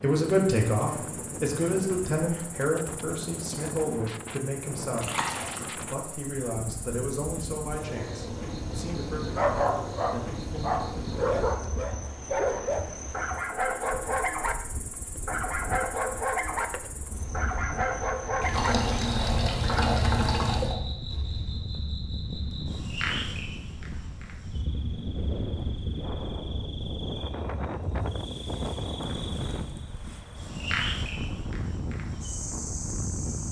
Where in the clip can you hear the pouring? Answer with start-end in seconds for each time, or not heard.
5.0-5.6, 18.4-20.8.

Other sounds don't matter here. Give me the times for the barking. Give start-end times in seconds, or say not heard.
9.3-14.6, 15.2-16.6, 17.3-18.8, 19.6-20.1.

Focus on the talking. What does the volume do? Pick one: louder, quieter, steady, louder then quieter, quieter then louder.
quieter.